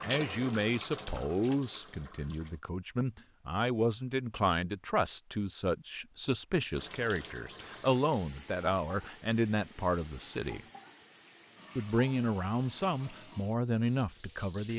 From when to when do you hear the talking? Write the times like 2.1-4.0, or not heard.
0.0-10.6, 11.8-14.7.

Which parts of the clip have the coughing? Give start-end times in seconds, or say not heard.
not heard.